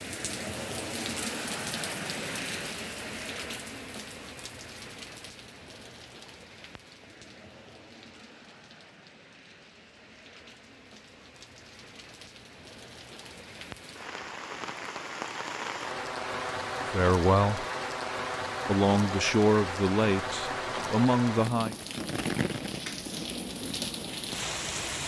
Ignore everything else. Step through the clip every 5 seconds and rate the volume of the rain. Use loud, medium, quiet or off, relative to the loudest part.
loud, quiet, medium, loud, loud.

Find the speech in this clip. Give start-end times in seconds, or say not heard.
16.9-17.6, 18.6-21.8.